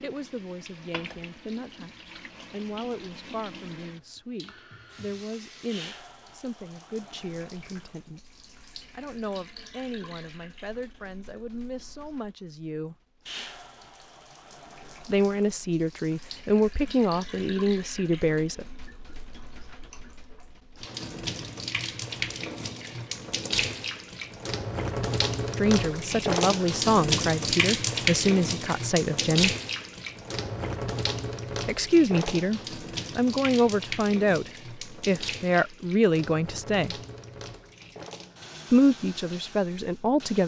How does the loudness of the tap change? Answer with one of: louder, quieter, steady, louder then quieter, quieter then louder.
louder then quieter.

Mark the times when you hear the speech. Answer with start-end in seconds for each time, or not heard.
0.0-8.2, 8.9-12.9, 15.1-18.6, 25.6-29.6, 31.6-37.0, 38.7-40.4.